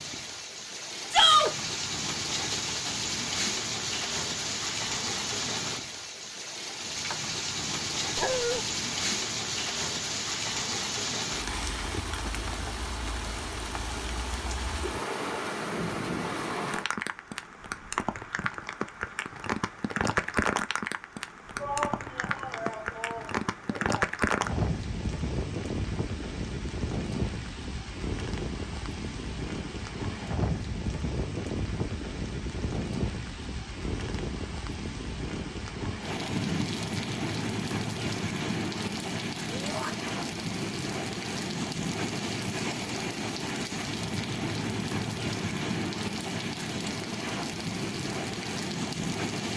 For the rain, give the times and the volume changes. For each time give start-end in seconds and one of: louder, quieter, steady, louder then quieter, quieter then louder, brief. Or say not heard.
0.0-49.5 steady.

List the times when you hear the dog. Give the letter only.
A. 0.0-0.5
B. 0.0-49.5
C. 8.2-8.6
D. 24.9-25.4
C.